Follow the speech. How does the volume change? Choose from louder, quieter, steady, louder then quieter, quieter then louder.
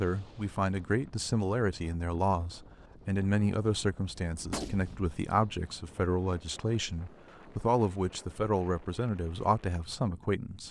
steady.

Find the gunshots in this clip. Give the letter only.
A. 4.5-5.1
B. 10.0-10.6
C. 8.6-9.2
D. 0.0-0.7
A.